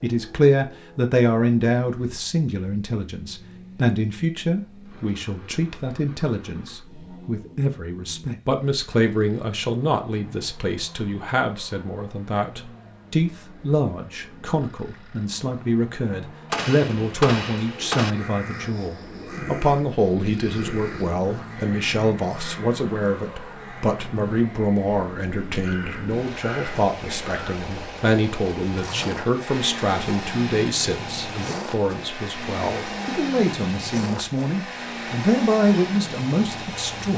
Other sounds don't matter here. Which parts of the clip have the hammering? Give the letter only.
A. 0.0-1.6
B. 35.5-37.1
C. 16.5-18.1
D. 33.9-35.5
C.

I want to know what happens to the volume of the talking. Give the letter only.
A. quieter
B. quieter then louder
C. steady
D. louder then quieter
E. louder
C.